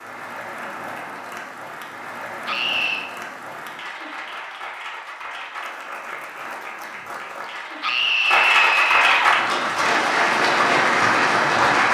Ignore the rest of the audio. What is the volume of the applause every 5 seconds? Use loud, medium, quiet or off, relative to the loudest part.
quiet, medium, loud.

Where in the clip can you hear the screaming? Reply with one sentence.
You can hear the screaming from 2.5 to 3.0 s and from 7.8 to 9.3 s.